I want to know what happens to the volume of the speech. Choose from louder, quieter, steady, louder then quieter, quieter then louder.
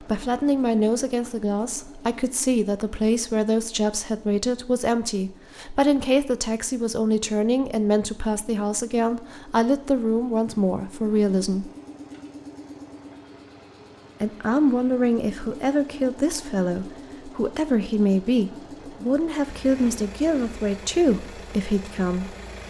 steady.